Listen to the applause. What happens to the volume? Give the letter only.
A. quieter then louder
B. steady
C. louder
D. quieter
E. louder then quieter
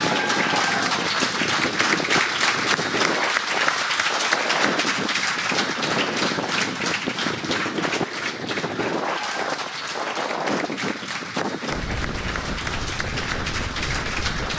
D.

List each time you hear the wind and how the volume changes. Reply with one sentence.
You can hear the wind from 0.0 to 14.5 s, at a steady volume.